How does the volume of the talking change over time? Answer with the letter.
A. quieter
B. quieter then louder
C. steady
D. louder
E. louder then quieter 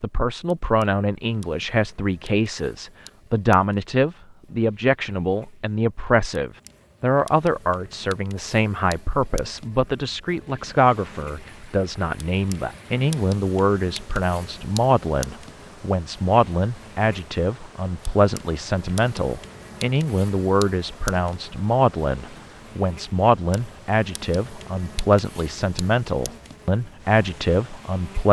C.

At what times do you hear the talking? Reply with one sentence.
You can hear the talking from 0.0 to 28.2 s.